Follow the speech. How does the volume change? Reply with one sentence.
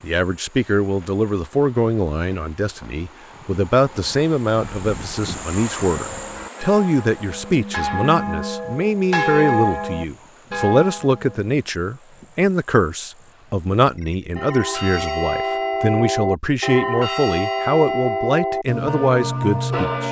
The loudness of the speech stays about the same.